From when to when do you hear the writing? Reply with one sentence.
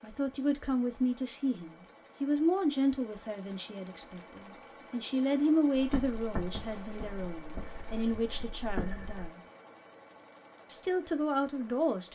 You can hear the writing from 5.8 to 9.3 s.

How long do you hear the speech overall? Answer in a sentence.
You can hear the speech for 11 seconds altogether.